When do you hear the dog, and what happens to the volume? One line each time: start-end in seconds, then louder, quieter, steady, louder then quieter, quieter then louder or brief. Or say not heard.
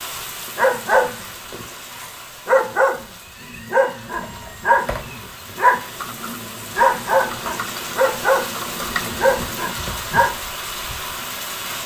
0.6-10.3 steady.